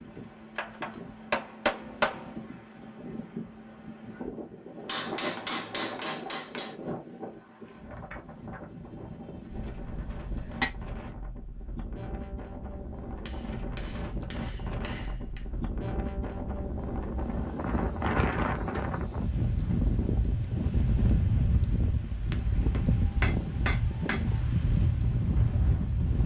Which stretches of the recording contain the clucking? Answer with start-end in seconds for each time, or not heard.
not heard.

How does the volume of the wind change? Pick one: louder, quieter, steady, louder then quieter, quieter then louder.
louder.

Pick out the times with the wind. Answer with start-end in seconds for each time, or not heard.
0.0-26.2.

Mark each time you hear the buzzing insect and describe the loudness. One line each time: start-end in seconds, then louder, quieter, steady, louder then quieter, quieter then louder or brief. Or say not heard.
not heard.